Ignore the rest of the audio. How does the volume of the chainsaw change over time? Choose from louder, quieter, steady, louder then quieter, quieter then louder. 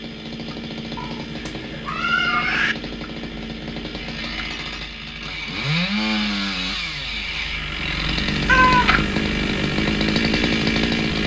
louder.